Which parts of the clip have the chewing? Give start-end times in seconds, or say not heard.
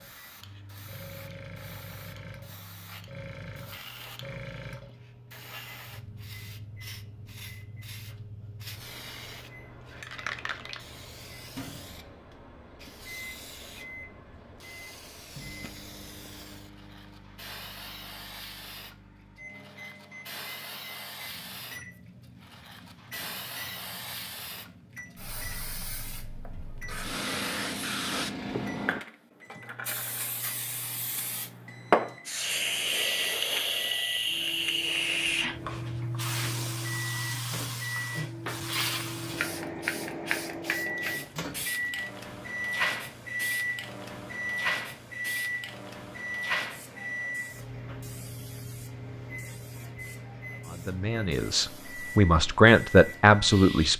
not heard.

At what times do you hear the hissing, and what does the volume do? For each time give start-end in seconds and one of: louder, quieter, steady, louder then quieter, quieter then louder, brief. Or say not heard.
0.0-53.9 louder then quieter.